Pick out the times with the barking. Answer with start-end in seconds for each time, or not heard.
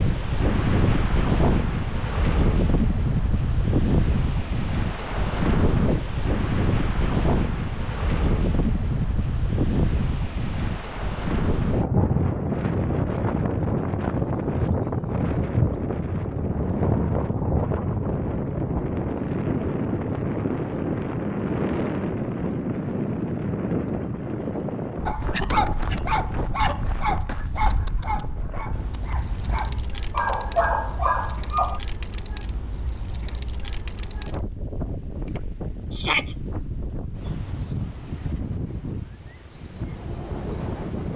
25.1-31.8.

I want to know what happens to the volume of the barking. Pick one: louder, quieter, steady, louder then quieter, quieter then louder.
quieter then louder.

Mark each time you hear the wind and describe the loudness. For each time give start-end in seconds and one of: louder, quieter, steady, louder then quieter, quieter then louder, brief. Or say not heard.
0.0-41.1 quieter.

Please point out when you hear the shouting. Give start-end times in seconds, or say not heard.
35.9-36.4.